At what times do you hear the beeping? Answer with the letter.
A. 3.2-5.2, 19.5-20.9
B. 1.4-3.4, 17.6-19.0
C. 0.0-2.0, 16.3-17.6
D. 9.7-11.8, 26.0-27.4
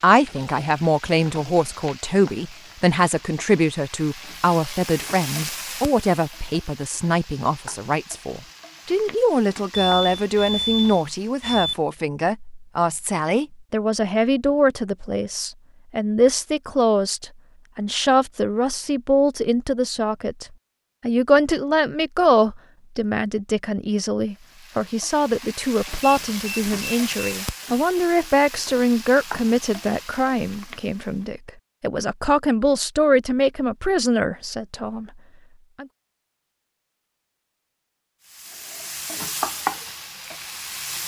D.